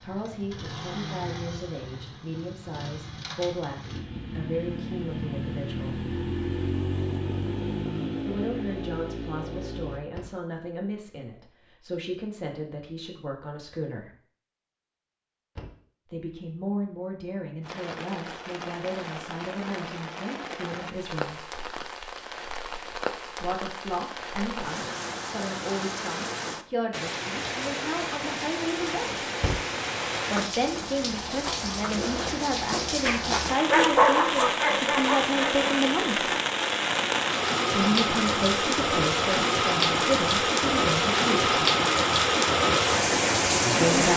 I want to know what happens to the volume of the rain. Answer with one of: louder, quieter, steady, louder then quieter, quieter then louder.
louder.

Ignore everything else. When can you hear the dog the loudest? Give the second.
34 s.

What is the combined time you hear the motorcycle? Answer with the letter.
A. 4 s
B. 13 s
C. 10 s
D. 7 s
C.